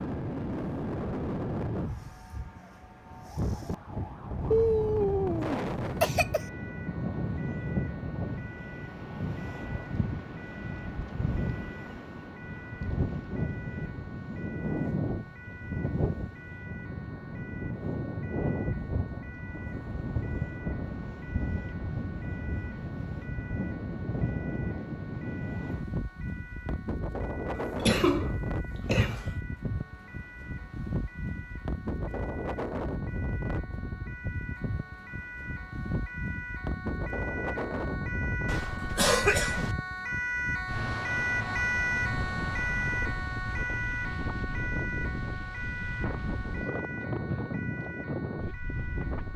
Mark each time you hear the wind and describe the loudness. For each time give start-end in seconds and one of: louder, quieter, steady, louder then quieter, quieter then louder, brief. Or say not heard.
0.0-49.3 steady.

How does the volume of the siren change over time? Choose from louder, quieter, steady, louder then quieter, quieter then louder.
louder.